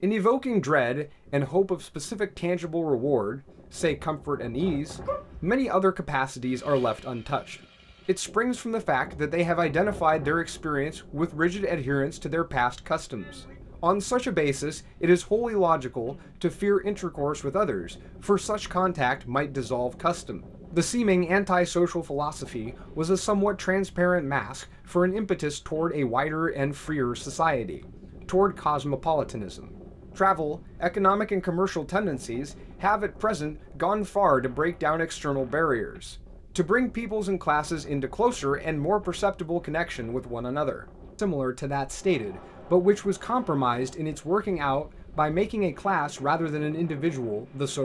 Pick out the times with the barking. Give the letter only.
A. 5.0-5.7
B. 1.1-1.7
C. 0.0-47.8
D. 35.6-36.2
A.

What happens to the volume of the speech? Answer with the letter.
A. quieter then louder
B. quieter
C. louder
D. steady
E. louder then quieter
D.